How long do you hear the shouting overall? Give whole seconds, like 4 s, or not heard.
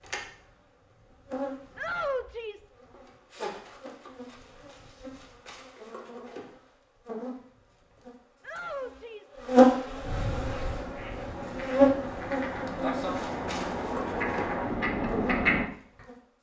2 s.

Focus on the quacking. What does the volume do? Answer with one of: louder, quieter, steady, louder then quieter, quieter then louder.
louder.